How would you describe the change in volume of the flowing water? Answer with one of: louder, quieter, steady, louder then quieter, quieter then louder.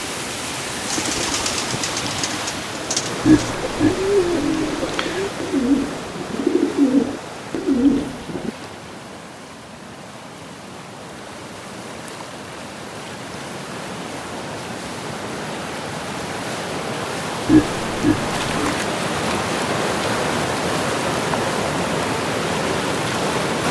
quieter then louder.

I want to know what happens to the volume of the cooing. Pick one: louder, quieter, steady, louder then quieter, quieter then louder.
louder.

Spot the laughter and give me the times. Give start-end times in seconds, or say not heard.
3.2-5.0, 17.4-18.8.